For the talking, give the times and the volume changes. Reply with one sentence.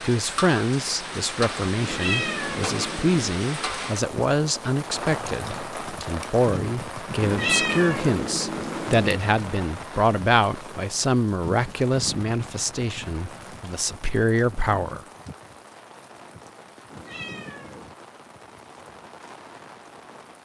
The talking can be heard from 0.0 to 15.0 s, at a steady volume.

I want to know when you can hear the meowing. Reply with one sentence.
The meowing can be heard from 1.8 to 3.4 s, from 7.2 to 9.2 s and from 16.9 to 17.9 s.